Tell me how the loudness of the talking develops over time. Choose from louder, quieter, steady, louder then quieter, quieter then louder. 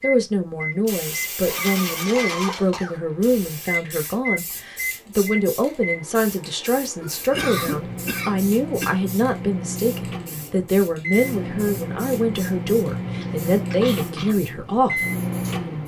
steady.